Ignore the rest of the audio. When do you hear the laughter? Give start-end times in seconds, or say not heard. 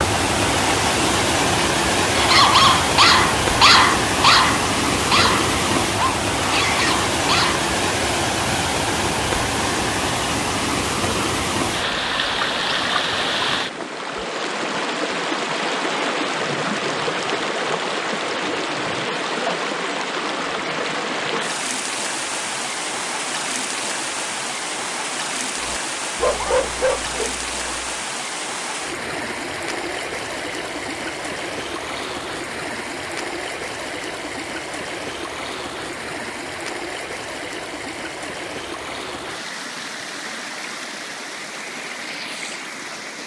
not heard.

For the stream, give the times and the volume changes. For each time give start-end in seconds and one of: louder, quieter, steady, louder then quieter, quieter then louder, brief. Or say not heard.
0.0-43.2 quieter.